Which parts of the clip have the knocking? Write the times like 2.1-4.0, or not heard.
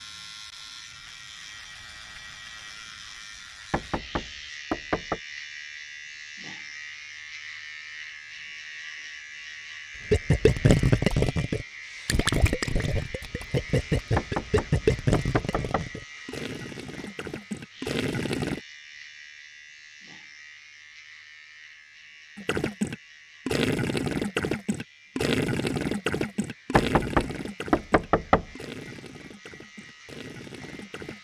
3.7-5.2, 14.2-15.9, 26.8-28.4.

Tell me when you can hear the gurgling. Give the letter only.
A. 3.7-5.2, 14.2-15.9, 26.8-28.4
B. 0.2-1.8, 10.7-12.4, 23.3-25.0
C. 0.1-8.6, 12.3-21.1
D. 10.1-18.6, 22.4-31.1
D.